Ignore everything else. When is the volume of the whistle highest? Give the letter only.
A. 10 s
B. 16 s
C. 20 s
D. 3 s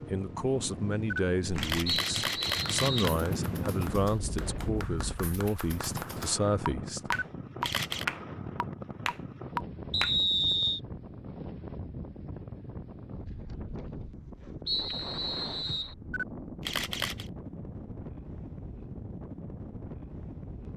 A.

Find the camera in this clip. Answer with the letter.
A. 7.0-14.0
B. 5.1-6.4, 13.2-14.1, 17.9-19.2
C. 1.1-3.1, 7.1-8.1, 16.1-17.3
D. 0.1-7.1
C.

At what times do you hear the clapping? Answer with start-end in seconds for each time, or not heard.
1.4-10.2.